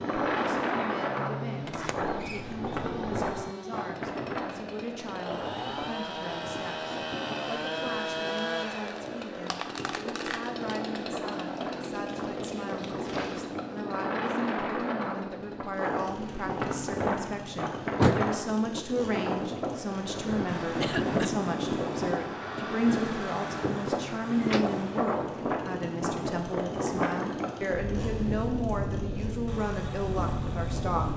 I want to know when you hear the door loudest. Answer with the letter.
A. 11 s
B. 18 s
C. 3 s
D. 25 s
B.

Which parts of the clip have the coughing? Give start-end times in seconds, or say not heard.
20.8-21.4.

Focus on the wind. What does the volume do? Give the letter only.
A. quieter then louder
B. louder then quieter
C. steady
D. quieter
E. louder
A.